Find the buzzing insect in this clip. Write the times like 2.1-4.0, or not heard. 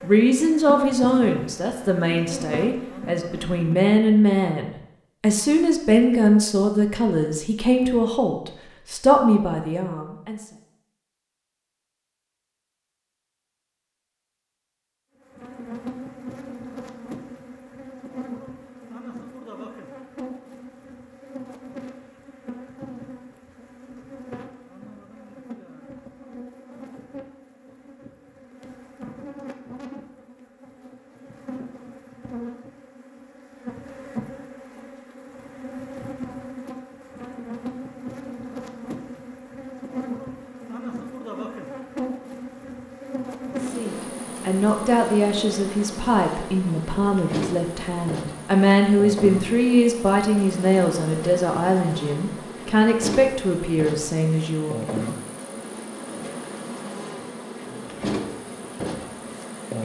0.0-3.9, 15.2-59.7.